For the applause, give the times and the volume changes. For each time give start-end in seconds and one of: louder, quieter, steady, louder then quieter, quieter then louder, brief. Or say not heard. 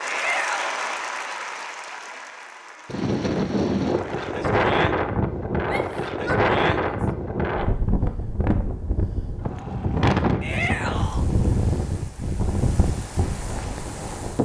0.0-4.5 quieter.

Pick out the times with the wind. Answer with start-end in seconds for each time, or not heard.
2.9-14.4.